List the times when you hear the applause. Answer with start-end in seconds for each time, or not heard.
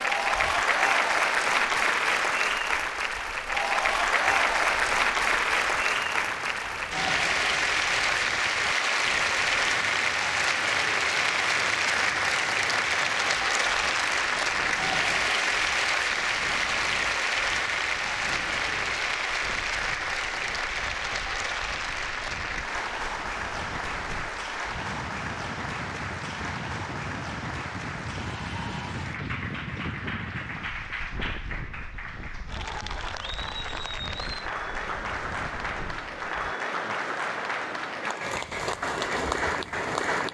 0.0-40.2.